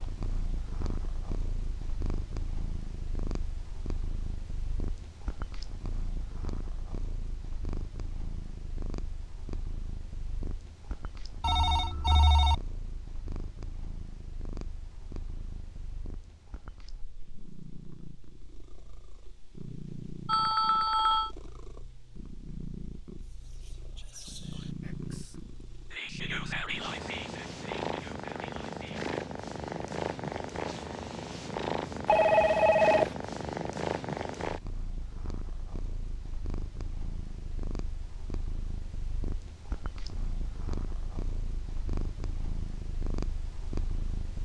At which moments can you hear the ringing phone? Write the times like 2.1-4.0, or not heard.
11.4-12.6, 20.2-21.3, 32.0-33.1.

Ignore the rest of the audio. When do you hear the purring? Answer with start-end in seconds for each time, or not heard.
0.0-44.4.